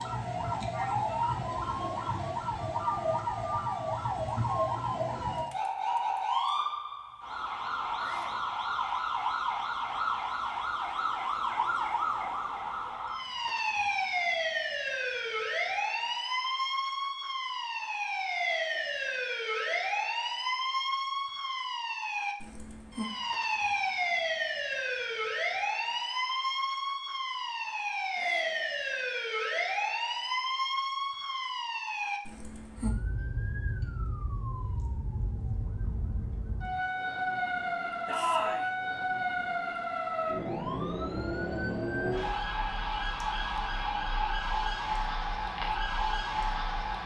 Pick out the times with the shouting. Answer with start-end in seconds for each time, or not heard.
8.0-8.4, 28.1-28.6, 38.0-38.6.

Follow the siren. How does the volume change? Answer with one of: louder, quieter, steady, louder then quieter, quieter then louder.
steady.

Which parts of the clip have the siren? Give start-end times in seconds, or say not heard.
0.0-47.0.